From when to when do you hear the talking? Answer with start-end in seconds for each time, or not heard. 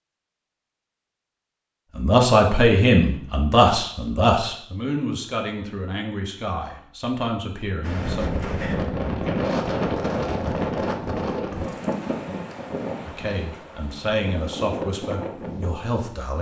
1.9-8.3, 13.1-16.3.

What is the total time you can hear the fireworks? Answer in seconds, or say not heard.
not heard.